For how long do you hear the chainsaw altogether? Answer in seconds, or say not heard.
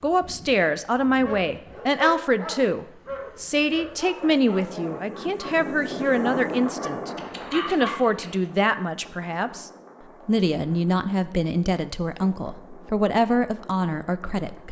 not heard.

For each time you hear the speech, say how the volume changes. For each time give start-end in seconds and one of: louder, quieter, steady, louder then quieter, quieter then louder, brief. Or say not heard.
0.0-14.6 steady.